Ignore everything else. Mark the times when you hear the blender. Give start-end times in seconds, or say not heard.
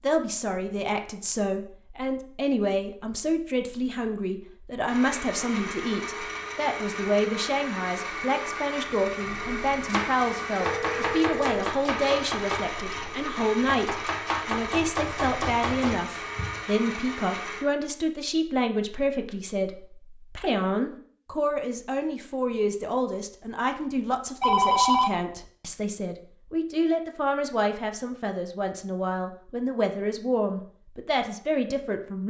4.8-17.6.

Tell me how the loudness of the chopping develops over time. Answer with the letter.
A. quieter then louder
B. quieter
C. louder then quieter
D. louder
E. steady
E.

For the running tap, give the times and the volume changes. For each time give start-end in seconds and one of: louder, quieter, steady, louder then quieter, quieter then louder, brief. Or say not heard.
not heard.